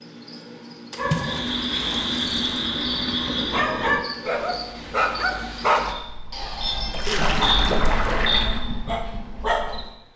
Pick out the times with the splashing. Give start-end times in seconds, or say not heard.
0.9-2.7, 6.9-8.6.